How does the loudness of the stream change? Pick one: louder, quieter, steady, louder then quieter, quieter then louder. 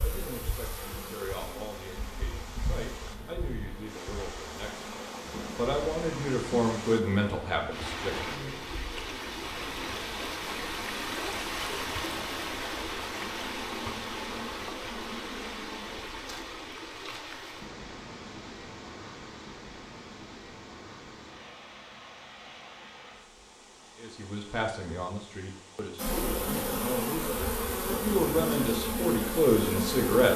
louder then quieter.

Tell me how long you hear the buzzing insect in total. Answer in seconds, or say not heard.
21 s.